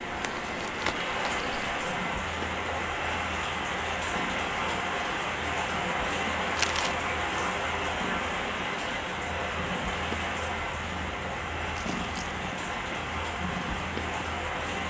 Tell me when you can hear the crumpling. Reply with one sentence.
You can hear the crumpling from 0.1 to 1.3 s, from 6.5 to 7.0 s and from 11.8 to 12.3 s.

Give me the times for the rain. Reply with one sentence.
The rain can be heard from 0.0 to 14.8 s.